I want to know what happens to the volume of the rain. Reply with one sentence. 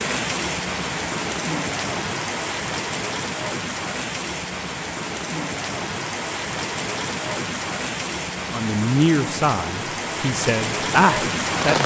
The loudness of the rain stays about the same.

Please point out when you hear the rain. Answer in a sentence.
You can hear the rain from 0.0 to 11.8 s.